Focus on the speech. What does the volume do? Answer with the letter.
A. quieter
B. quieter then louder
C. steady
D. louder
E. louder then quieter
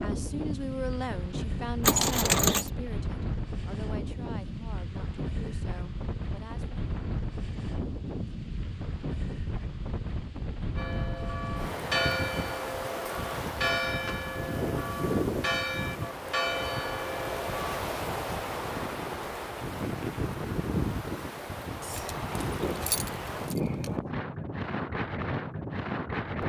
A.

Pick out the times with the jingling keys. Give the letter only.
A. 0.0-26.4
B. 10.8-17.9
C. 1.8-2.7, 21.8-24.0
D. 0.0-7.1
C.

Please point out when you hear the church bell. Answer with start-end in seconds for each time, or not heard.
10.8-17.9.